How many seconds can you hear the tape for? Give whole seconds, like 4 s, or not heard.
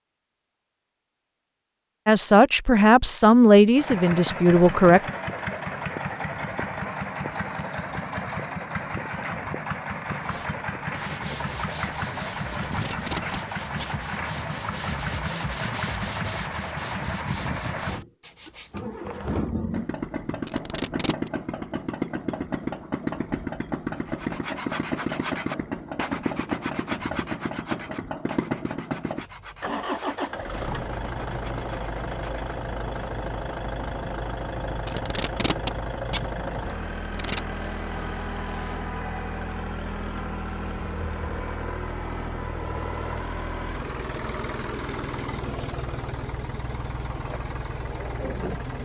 5 s.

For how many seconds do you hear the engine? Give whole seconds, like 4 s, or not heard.
45 s.